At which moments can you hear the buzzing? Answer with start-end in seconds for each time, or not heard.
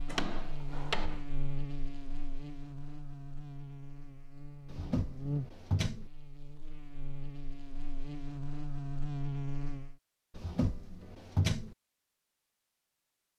0.0-9.9.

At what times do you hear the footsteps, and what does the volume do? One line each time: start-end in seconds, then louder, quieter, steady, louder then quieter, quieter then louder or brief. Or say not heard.
not heard.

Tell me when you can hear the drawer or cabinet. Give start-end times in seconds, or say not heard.
0.1-1.2, 4.7-6.1, 10.3-11.8.